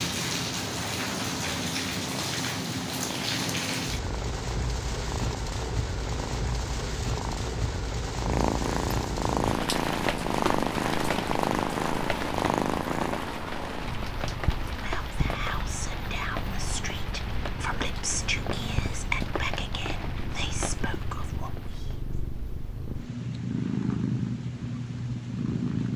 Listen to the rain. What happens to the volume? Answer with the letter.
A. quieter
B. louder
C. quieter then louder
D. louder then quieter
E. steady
A.